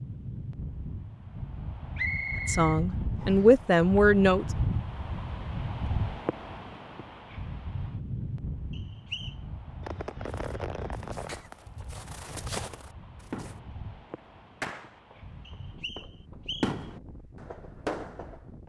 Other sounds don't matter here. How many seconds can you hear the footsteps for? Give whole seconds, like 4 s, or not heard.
3 s.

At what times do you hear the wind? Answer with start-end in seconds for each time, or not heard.
0.0-18.6.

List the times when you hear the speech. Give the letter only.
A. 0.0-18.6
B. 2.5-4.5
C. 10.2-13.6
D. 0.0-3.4
B.